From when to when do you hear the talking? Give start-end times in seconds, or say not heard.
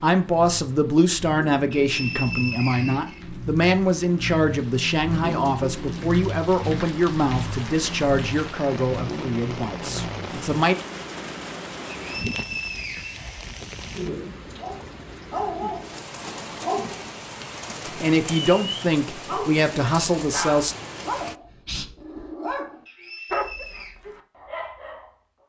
0.0-10.8, 18.0-20.8.